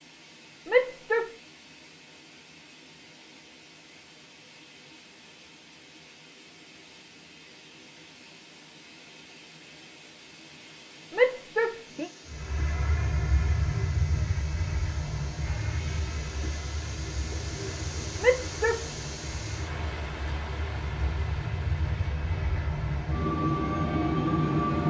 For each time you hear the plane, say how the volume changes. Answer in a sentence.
The plane can be heard from 12.2 to 24.8 s, getting quieter then louder.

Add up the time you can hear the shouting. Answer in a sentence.
You can hear the shouting for 2 seconds altogether.